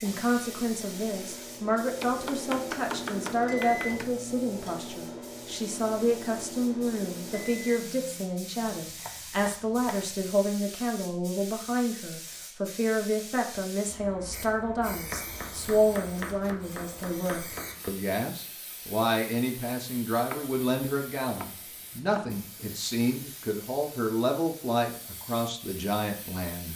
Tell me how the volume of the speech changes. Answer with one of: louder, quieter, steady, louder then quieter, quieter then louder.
steady.